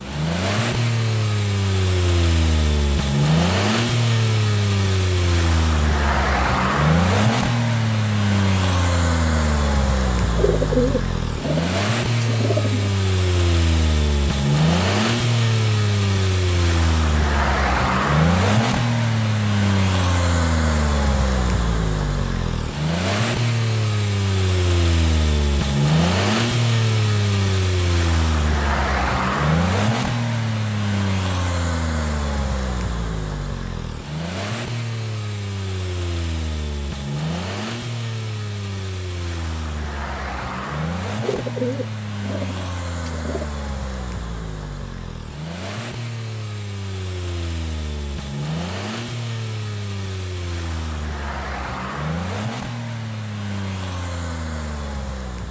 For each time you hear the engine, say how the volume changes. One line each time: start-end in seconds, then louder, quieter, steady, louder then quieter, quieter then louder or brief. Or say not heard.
0.0-55.4 quieter.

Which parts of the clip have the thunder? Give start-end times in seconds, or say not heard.
not heard.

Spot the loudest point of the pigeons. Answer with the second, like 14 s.
11 s.